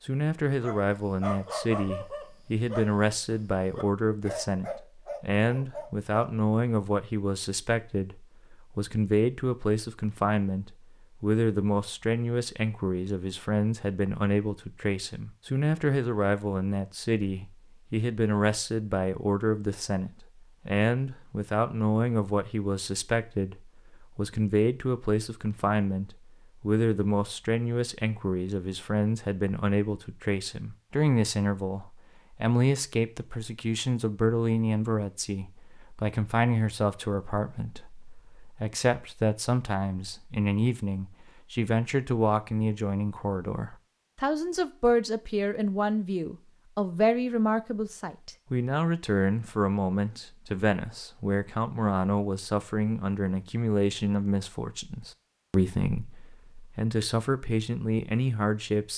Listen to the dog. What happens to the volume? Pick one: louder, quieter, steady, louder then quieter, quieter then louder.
quieter then louder.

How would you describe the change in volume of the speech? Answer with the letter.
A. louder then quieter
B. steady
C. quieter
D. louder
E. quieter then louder
B.